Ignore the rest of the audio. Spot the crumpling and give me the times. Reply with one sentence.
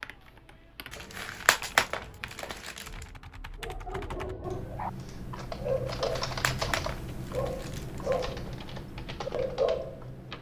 You can hear the crumpling from 0.9 to 3.0 s and from 6.0 to 8.2 s.